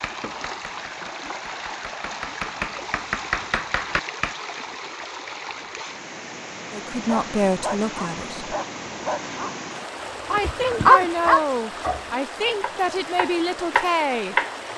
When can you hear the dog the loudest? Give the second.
11 s.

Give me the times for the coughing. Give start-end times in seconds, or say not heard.
not heard.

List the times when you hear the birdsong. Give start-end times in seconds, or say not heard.
not heard.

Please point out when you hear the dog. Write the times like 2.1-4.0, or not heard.
6.9-11.4.